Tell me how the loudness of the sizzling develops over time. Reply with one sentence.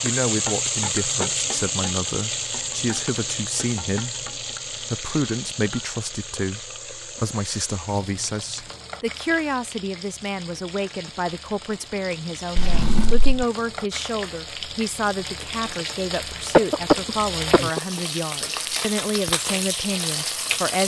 The loudness of the sizzling goes down, then up.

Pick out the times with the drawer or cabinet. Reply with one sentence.
You can hear the drawer or cabinet from 12.6 to 13.4 s.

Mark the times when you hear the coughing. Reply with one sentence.
The coughing can be heard from 16.5 to 18.0 s.